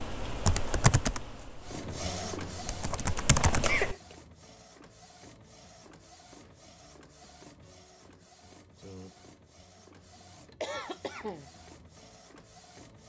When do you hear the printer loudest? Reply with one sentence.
The volume of the printer peaks at 2 seconds.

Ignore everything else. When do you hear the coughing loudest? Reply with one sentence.
The volume of the coughing peaks at 4 seconds.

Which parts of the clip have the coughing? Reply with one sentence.
You can hear the coughing from 3.3 to 4.2 s and from 10.6 to 11.5 s.